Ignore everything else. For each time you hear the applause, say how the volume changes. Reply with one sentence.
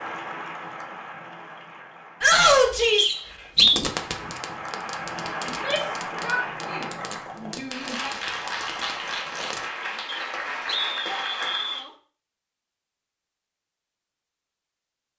The applause can be heard from 0.0 to 11.8 s, getting louder.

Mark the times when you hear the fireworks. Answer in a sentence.
You can hear the fireworks from 3.5 to 9.7 s.